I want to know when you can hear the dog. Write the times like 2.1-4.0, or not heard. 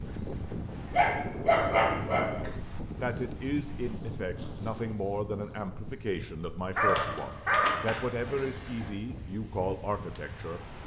0.9-2.5, 6.8-8.9.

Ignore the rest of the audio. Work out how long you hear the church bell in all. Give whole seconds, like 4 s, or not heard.
not heard.